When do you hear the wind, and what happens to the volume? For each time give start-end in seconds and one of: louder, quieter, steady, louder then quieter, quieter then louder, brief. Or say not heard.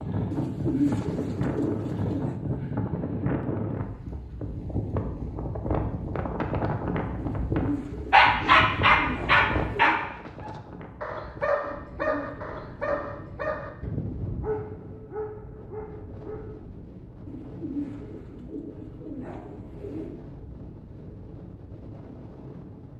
0.0-22.9 quieter.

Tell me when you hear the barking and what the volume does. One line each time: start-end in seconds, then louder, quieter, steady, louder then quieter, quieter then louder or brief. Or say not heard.
8.1-16.6 quieter.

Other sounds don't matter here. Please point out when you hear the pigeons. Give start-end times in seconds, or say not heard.
0.3-2.4, 7.2-10.0, 11.6-13.6, 17.2-20.2.